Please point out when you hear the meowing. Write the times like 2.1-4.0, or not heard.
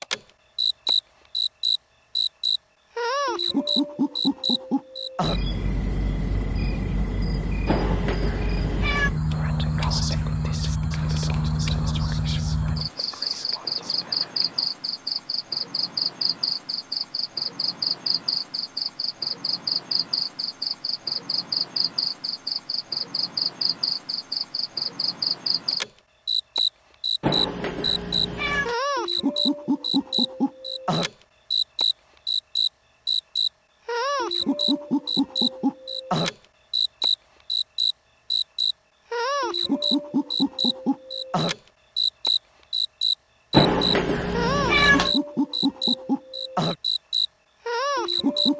7.7-9.1, 27.2-28.8, 43.5-45.1.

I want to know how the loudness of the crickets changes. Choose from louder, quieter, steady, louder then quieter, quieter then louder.
steady.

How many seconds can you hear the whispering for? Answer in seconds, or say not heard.
5 s.